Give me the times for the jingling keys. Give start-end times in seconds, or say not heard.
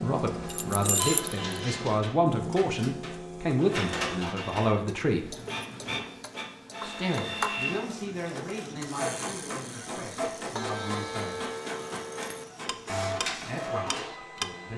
0.5-1.4, 5.3-6.0, 11.9-12.5.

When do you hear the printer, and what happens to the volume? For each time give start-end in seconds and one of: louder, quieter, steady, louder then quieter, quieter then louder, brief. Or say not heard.
0.0-14.7 steady.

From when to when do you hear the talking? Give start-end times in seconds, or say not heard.
0.0-5.3, 6.8-11.4, 12.8-14.7.